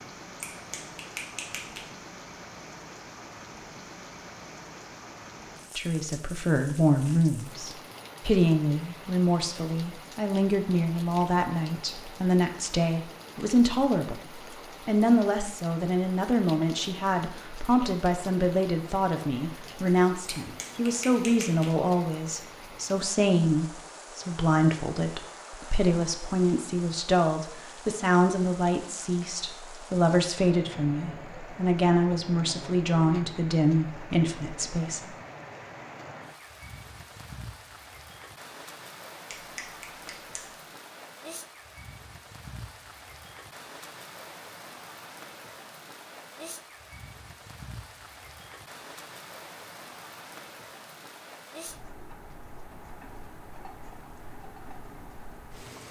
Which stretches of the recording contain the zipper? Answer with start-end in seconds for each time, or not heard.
not heard.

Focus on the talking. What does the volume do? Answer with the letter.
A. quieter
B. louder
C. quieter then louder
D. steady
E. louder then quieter
D.